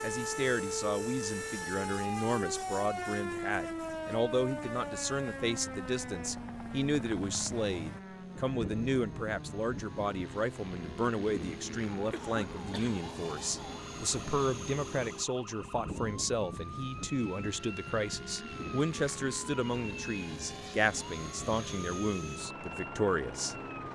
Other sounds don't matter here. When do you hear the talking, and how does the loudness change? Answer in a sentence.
The talking can be heard from 0.0 to 23.6 s, at a steady volume.